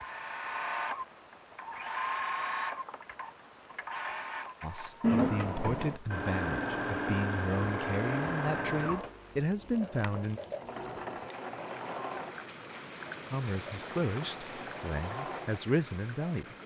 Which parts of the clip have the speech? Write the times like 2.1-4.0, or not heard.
4.6-10.4, 13.3-16.6.